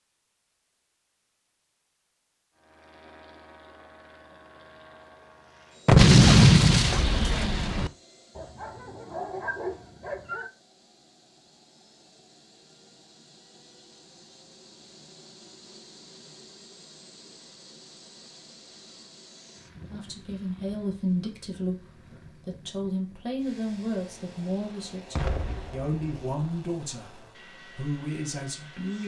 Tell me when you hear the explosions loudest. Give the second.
6 s.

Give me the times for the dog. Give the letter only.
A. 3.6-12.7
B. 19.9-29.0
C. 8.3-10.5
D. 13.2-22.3
C.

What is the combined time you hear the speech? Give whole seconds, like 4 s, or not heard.
9 s.